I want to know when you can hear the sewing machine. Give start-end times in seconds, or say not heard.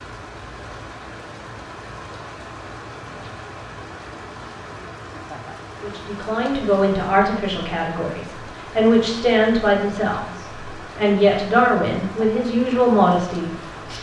not heard.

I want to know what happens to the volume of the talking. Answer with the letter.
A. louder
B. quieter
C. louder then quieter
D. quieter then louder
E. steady
E.